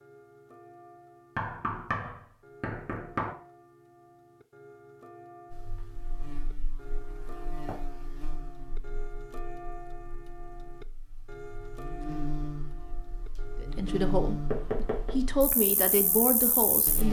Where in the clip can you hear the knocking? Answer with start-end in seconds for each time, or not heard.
1.4-3.4, 7.2-7.8, 14.5-15.2.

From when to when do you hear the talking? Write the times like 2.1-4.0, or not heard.
13.6-17.0.